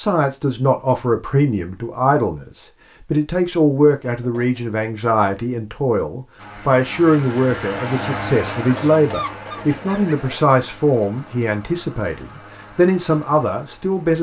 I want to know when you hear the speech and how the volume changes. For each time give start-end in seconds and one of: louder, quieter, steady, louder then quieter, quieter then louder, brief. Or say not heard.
0.0-14.1 steady.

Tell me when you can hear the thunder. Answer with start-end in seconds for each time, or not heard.
not heard.